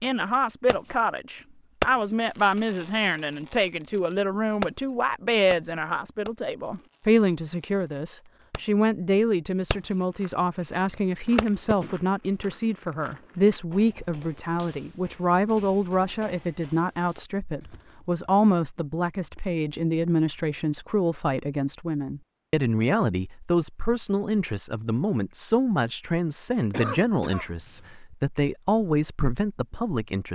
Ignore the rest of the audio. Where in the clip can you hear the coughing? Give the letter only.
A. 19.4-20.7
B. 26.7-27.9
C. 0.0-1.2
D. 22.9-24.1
B.